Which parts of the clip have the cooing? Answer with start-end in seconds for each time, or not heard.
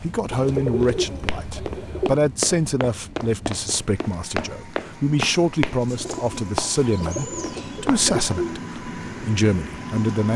0.3-2.1, 5.8-8.6.